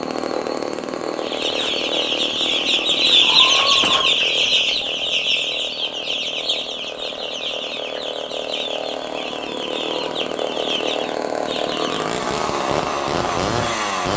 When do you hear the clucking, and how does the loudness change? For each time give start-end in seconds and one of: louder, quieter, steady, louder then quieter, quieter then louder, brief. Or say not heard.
1.1-12.1 quieter.